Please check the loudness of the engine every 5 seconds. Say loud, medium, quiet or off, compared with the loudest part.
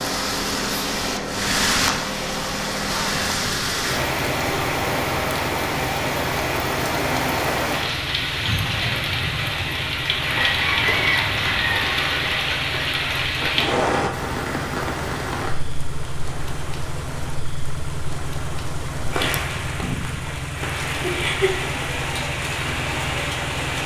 loud, medium, medium, loud, loud.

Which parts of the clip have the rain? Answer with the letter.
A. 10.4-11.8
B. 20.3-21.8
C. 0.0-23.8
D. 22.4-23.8
C.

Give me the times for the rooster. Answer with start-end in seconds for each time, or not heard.
10.4-11.8.